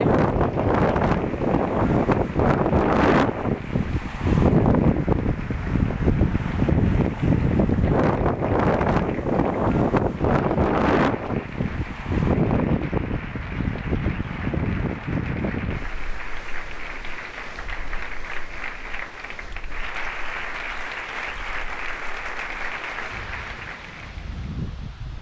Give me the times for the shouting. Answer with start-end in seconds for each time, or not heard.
not heard.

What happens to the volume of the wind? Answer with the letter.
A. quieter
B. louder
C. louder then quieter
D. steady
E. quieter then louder
A.